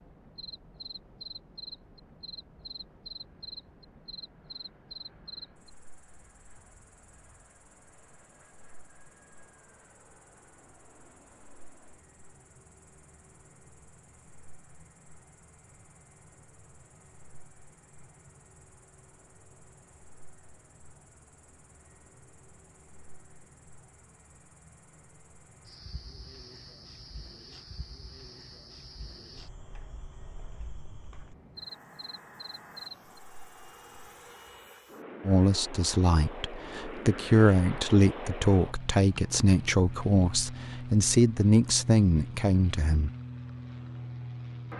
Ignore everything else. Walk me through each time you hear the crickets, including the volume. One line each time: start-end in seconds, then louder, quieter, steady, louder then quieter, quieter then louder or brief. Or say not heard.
0.0-34.4 quieter then louder.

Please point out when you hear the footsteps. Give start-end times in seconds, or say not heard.
not heard.